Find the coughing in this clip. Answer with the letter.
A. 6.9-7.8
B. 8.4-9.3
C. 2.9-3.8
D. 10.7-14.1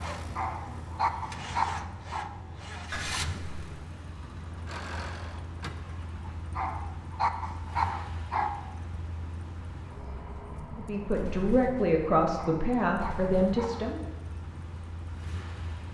C.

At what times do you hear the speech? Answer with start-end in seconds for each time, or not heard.
10.7-14.1.